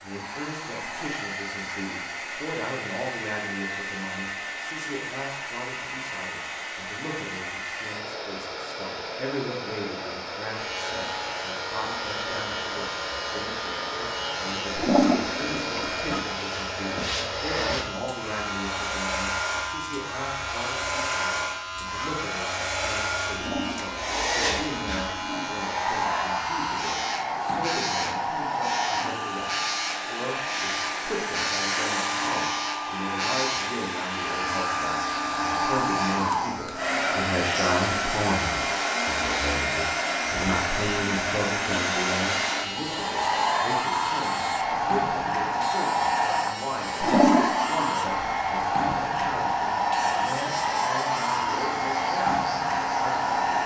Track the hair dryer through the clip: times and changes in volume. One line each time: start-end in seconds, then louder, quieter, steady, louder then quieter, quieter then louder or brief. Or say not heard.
0.0-53.6 louder.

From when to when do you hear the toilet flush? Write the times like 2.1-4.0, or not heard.
14.8-16.2, 23.3-25.5, 47.0-47.8.